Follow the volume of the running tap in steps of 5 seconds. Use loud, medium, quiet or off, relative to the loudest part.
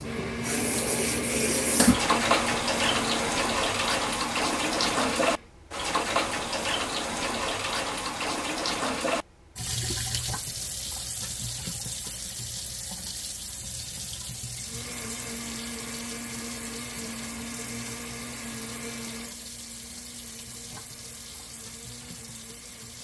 loud, loud, medium, quiet, quiet.